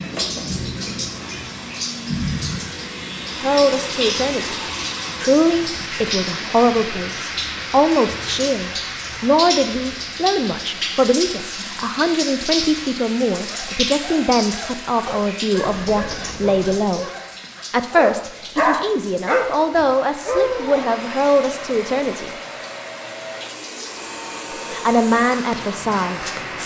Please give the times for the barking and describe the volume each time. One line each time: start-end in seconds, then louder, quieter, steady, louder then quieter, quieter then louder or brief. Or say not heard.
13.4-20.9 louder.